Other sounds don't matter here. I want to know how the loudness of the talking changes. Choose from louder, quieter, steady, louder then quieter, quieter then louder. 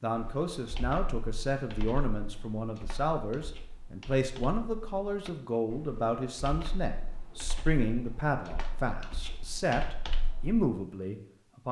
steady.